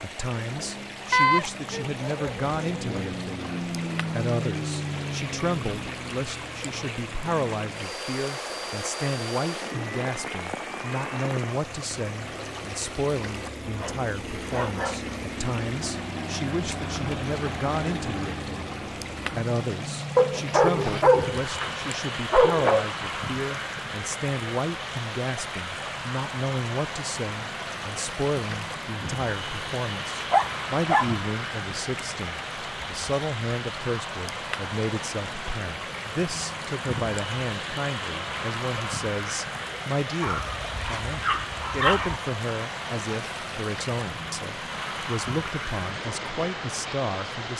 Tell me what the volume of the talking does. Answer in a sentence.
The volume of the talking stays about the same.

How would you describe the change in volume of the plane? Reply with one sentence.
The volume of the plane stays about the same.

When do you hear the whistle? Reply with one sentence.
You can't hear the whistle here.